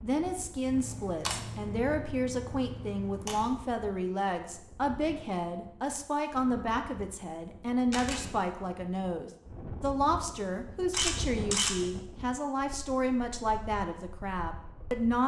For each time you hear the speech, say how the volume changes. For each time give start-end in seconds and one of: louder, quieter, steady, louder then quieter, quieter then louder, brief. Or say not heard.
0.0-15.2 steady.